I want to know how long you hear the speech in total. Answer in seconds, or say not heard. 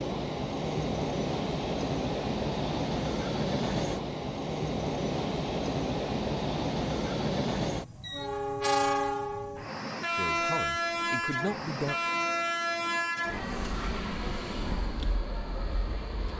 2 s.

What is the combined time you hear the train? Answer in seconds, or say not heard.
16 s.